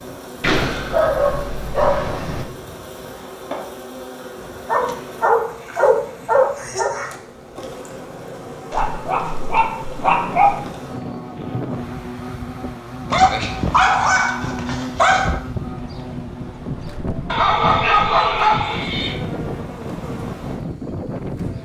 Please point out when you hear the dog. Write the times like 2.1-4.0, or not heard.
0.4-2.5, 4.7-7.0, 8.7-10.6, 13.1-15.3, 17.2-19.1.